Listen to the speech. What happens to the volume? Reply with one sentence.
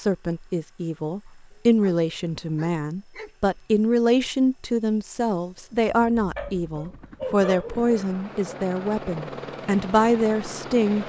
The volume of the speech stays about the same.